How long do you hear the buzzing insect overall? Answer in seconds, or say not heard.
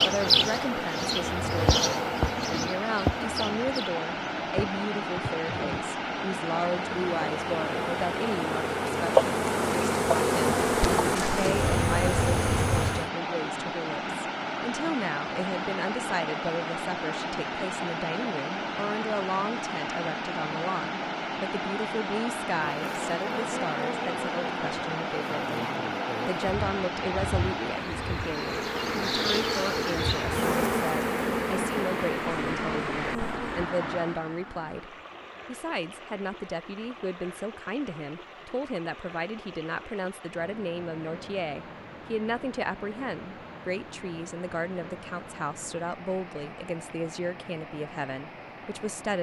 24 s.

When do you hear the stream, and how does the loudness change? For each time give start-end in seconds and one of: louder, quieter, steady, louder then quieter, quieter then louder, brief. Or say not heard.
0.0-49.1 quieter.